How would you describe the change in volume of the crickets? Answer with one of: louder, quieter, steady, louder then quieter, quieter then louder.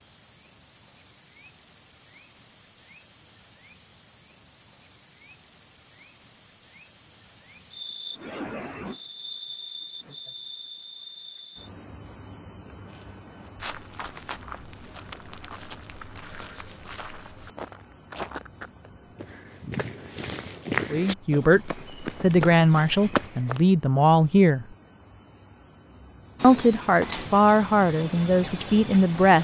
louder then quieter.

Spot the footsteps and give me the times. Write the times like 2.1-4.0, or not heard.
12.8-23.6.